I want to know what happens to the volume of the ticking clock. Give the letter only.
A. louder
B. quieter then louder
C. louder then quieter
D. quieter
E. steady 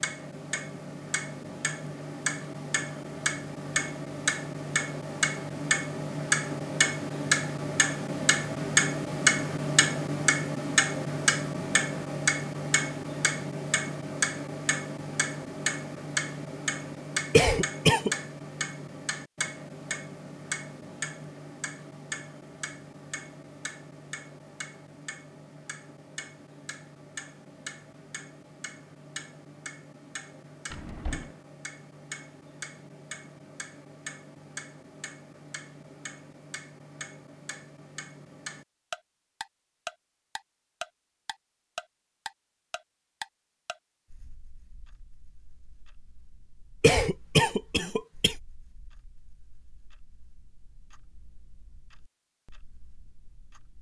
D.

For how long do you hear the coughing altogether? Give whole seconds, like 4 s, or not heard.
2 s.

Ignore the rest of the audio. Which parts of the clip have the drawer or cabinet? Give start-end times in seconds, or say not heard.
30.7-31.4.